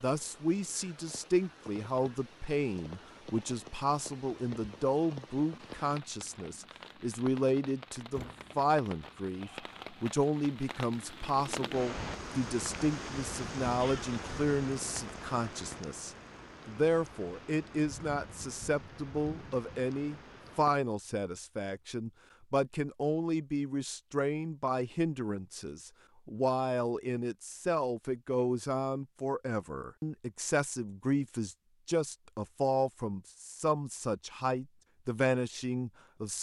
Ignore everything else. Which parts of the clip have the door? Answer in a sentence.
You can hear the door from 8.1 to 8.6 s.